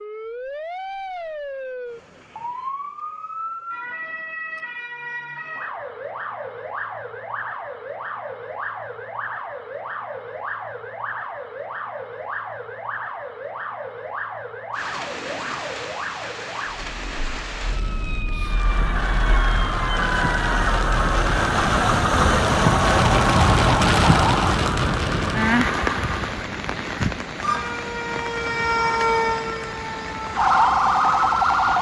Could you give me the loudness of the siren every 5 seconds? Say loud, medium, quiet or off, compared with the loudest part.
quiet, quiet, quiet, quiet, medium, medium, loud.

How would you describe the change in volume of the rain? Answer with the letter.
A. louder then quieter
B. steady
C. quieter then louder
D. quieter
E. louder
A.